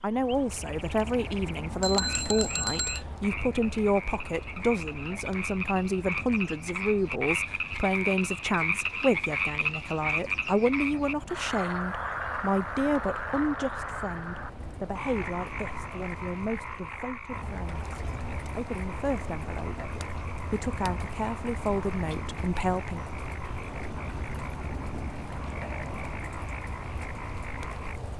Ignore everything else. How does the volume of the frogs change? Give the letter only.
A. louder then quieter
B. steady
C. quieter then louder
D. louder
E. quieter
A.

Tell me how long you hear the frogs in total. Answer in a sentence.
You can hear the frogs for 28 seconds altogether.